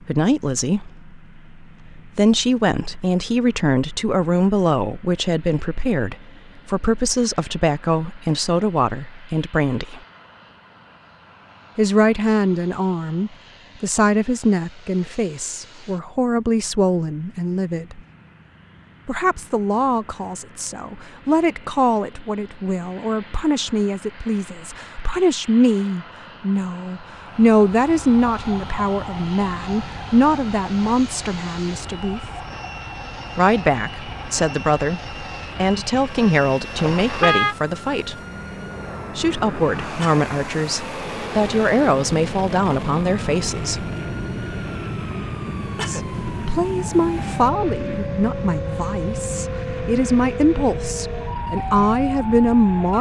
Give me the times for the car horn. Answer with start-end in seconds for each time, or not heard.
36.8-37.5.